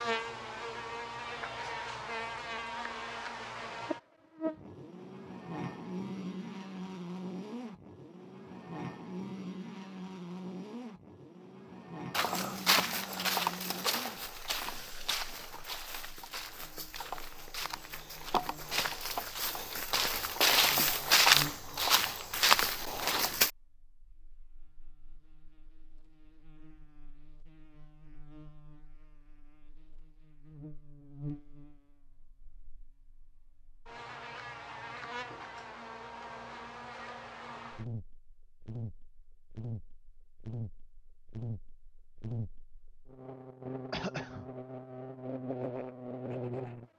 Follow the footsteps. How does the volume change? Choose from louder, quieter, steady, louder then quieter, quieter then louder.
quieter then louder.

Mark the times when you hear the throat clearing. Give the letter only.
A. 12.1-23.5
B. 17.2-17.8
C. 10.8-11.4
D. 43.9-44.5
D.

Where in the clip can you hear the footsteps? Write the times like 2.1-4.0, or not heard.
12.1-23.5.